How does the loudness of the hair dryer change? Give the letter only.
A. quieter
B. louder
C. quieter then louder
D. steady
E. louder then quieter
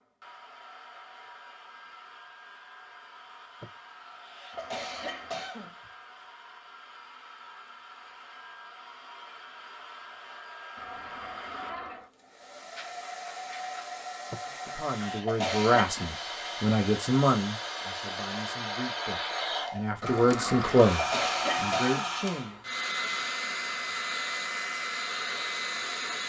B.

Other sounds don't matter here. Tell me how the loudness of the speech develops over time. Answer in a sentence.
The loudness of the speech goes down, then up.